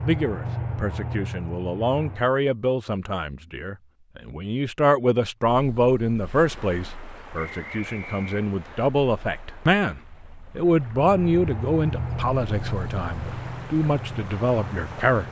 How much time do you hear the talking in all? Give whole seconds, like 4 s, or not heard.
15 s.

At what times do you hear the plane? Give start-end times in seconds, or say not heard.
0.0-2.3, 10.9-15.2.